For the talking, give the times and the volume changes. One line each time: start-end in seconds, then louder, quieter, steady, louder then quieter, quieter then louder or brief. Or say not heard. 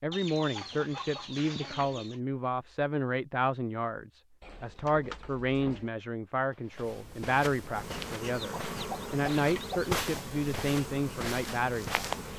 0.0-12.1 steady.